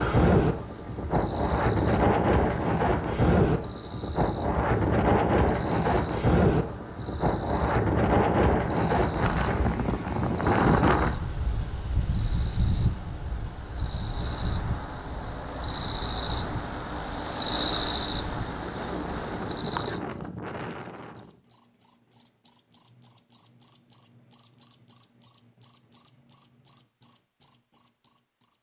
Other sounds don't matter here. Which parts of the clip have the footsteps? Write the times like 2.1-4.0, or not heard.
not heard.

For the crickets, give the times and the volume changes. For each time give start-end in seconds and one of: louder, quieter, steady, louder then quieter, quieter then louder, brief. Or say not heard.
0.0-28.5 louder then quieter.